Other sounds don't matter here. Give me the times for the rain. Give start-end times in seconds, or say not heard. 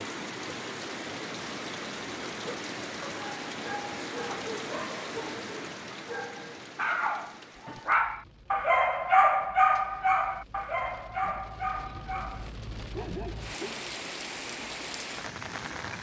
0.0-15.9.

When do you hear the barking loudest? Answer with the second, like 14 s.
9 s.